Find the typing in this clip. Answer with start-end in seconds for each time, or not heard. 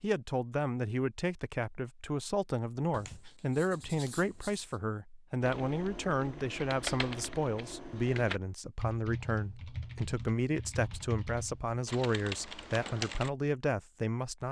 5.4-13.3.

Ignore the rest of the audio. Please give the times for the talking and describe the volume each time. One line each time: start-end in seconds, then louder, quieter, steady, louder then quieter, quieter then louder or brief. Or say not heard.
0.0-14.4 steady.